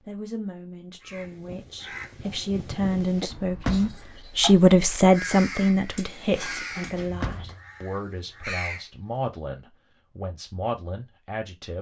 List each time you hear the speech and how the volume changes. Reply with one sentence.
You can hear the speech from 0.0 to 11.7 s, getting louder then quieter.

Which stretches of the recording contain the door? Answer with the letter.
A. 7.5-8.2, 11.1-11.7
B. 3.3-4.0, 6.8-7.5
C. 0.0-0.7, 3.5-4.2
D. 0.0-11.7
B.